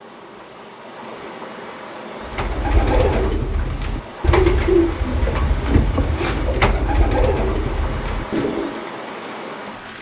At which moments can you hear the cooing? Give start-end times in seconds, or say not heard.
2.2-8.8.